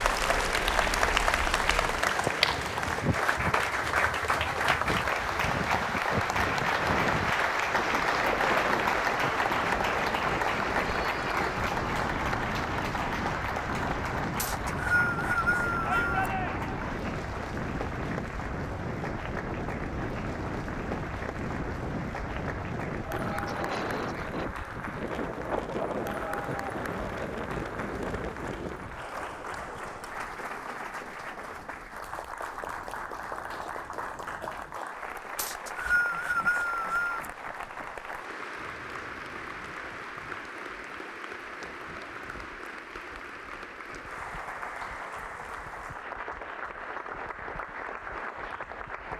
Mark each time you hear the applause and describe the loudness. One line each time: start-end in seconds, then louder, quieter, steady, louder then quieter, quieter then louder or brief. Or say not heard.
0.0-49.1 quieter.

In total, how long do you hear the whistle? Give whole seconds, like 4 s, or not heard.
4 s.